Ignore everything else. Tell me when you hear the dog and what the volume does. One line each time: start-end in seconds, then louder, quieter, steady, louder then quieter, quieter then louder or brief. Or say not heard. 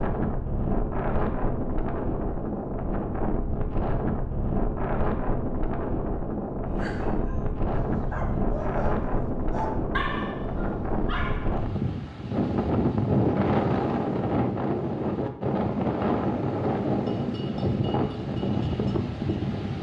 6.7-11.7 louder then quieter.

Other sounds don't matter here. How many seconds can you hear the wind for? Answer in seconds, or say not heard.
20 s.